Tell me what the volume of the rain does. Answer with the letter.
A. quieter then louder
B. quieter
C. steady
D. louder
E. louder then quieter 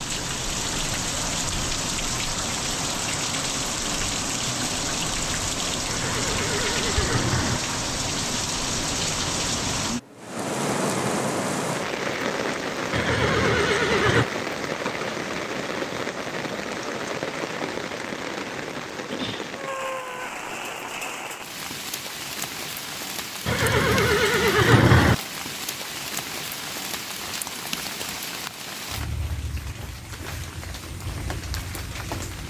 B.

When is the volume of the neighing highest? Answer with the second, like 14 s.
25 s.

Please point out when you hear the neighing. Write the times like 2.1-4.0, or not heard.
5.8-7.6, 12.9-14.2, 23.4-25.1.